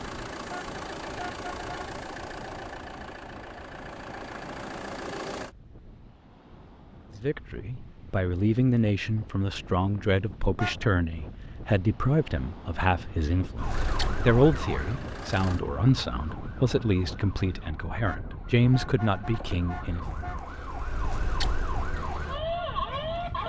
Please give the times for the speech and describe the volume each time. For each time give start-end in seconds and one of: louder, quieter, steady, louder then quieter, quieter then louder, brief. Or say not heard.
7.2-20.1 steady.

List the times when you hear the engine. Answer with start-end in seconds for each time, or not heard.
0.0-5.5, 13.7-15.6.